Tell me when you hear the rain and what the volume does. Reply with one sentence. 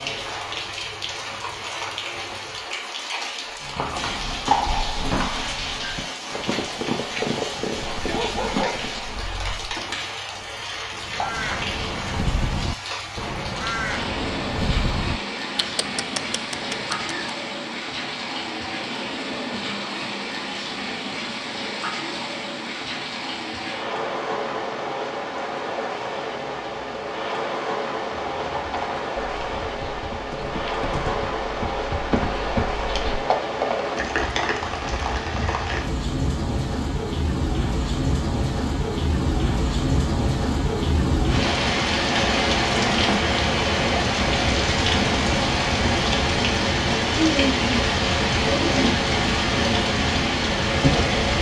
The rain can be heard from 0.0 to 51.3 s, getting louder.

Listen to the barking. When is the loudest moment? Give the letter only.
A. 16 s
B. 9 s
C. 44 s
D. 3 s
B.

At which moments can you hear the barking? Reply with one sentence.
You can hear the barking from 7.7 to 9.8 s.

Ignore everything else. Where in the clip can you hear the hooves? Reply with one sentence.
The hooves can be heard from 3.5 to 9.3 s and from 28.3 to 33.9 s.